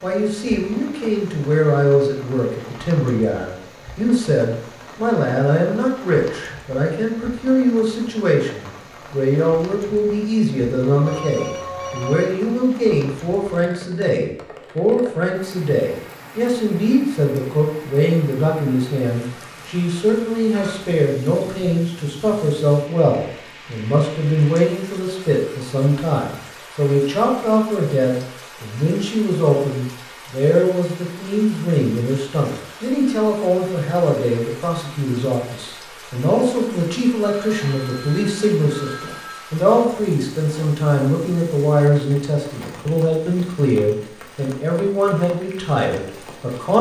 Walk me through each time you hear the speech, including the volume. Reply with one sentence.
You can hear the speech from 0.0 to 46.7 s, at a steady volume.